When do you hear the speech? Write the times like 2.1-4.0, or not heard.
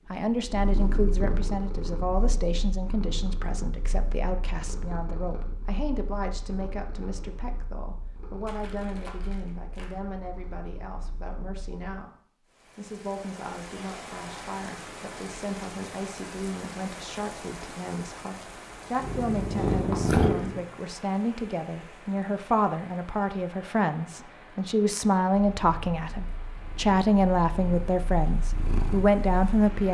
0.1-29.8.